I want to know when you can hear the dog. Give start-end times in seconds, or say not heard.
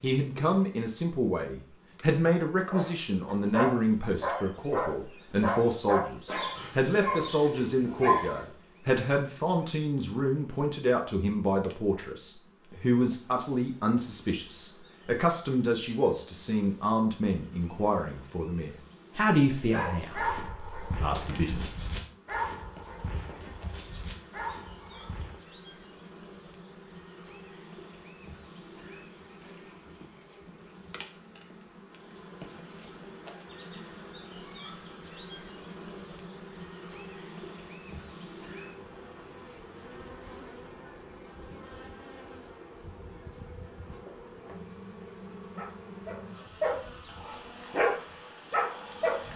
2.7-8.4, 19.5-25.4, 45.5-49.2.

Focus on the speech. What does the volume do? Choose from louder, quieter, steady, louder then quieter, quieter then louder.
steady.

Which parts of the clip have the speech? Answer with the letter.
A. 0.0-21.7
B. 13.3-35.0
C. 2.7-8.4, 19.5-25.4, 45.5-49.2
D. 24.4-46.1
A.